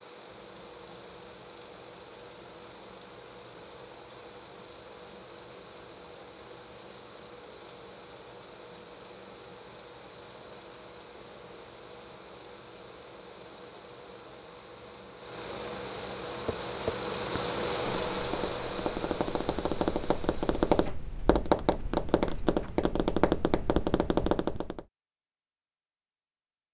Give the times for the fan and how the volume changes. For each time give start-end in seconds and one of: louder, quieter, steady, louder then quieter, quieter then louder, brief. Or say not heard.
0.0-20.9 louder.